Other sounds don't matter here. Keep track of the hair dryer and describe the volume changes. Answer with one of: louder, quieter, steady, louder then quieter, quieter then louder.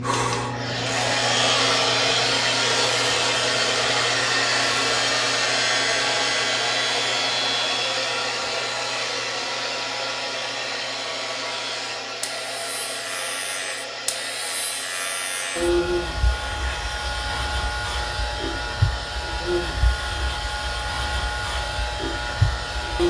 quieter.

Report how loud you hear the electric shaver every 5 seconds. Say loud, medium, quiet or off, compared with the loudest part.
loud, loud, medium, loud, loud.